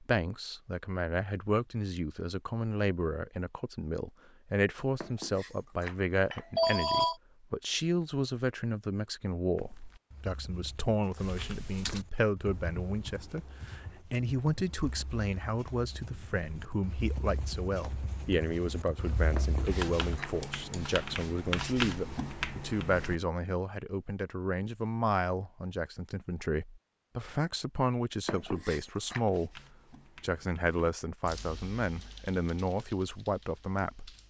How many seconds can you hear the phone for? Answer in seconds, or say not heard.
4 s.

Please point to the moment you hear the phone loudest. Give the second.
7 s.